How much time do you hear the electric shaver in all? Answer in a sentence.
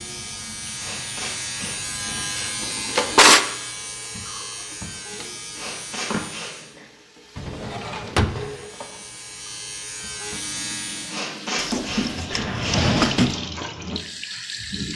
The electric shaver can be heard for 10 seconds in total.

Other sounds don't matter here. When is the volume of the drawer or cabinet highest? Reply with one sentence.
The loudest moment of the drawer or cabinet is at 3 seconds.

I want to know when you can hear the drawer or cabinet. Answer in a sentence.
You can hear the drawer or cabinet from 2.6 to 3.4 s, from 7.3 to 8.4 s and from 11.6 to 13.4 s.